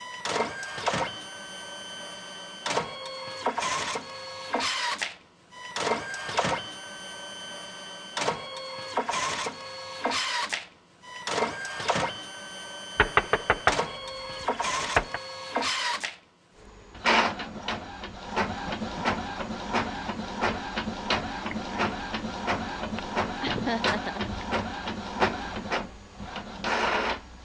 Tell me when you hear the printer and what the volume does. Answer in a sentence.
You can hear the printer from 0.0 to 27.4 s, at a steady volume.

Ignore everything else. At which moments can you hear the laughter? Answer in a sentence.
You can hear the laughter from 23.4 to 24.2 s.